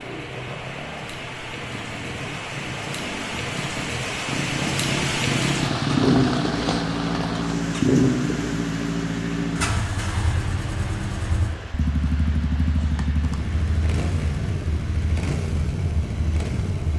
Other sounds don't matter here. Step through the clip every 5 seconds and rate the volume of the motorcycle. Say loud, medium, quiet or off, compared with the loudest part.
medium, loud, medium, medium.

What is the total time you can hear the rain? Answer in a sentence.
You can hear the rain for 17 seconds altogether.